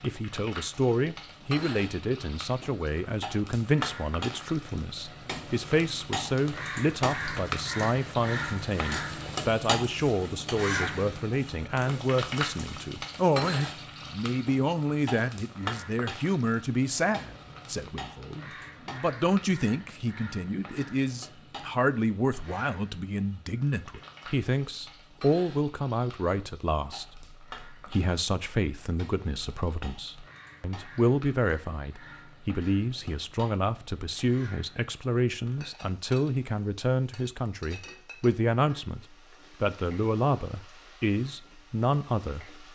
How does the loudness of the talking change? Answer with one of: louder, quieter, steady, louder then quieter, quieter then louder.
steady.